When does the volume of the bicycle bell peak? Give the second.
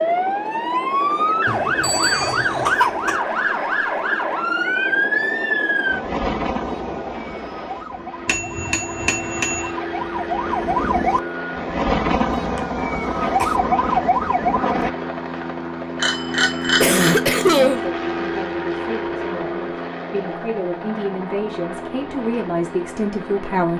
17 s.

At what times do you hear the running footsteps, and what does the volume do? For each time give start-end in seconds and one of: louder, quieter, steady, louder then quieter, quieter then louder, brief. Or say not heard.
not heard.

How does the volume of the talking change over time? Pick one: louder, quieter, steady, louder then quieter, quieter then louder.
louder.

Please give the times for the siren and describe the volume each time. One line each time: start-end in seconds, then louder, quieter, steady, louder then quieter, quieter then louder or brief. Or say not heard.
0.0-14.9 quieter then louder.